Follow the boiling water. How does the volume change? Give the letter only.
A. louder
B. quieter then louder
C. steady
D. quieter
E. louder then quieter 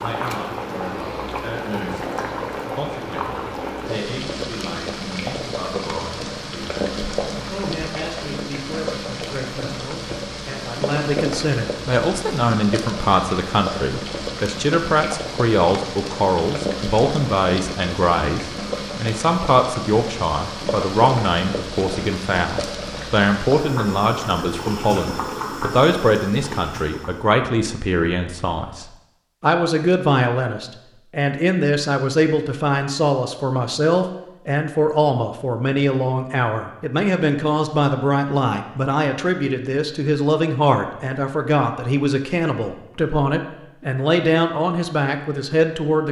C.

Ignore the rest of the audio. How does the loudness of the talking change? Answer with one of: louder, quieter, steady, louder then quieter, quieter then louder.
louder.